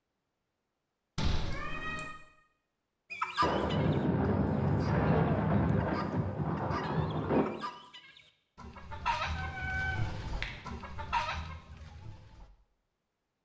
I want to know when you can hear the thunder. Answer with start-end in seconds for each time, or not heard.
3.4-7.5.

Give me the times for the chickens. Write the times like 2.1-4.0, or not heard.
3.1-12.5.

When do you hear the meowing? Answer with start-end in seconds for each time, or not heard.
1.1-2.1, 9.3-10.5.